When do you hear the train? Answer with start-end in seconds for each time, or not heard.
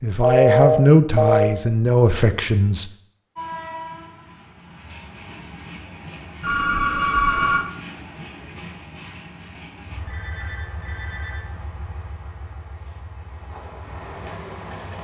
3.4-14.9.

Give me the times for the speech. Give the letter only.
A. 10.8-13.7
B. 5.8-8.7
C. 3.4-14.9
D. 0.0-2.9
D.